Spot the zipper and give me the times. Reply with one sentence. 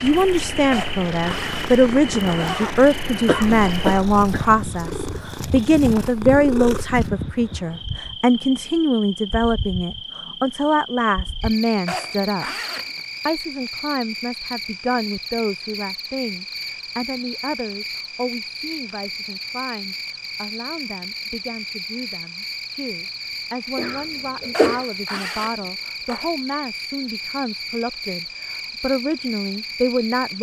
The zipper can be heard from 0.7 to 2.8 s, from 11.8 to 13.0 s and from 24.5 to 26.3 s.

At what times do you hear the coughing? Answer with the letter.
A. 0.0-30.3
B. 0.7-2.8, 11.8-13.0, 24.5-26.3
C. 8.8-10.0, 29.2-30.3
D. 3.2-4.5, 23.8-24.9
D.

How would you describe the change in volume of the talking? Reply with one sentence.
The loudness of the talking goes down, then up.